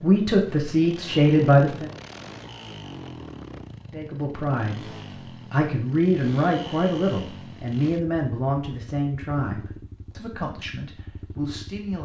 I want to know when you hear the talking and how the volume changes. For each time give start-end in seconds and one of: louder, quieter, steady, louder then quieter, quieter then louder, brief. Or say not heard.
0.0-1.9 brief
3.9-4.9 brief
5.5-11.9 quieter.